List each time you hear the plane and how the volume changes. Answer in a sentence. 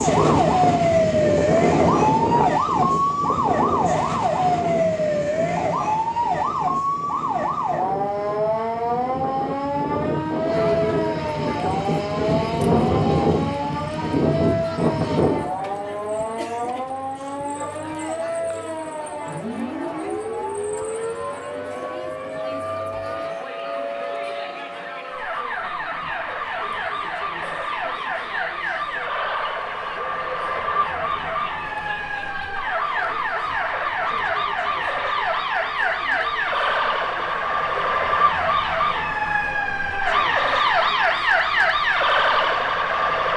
You can hear the plane from 0.0 to 15.5 s, getting quieter then louder.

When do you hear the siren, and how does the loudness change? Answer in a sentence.
The siren can be heard from 0.0 to 43.3 s, getting quieter then louder.